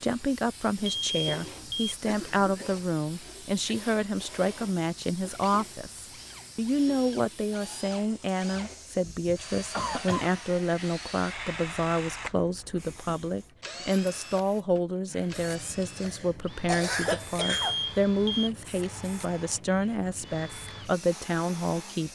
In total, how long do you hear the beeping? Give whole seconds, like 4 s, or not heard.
2 s.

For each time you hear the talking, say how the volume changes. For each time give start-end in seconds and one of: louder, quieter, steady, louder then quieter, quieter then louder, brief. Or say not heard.
0.0-22.1 steady.